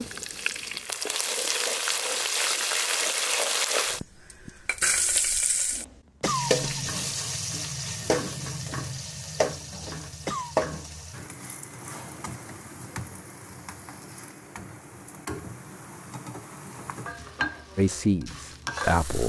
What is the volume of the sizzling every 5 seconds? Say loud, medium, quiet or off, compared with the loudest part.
loud, loud, medium, medium.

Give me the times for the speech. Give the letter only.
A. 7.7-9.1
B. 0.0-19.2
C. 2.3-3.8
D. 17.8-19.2
D.